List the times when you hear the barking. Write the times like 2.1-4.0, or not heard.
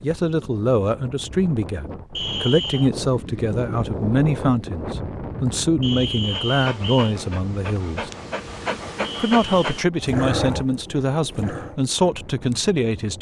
6.3-11.8.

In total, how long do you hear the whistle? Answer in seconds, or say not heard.
3 s.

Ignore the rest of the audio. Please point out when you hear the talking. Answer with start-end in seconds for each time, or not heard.
0.0-8.1, 9.2-13.1.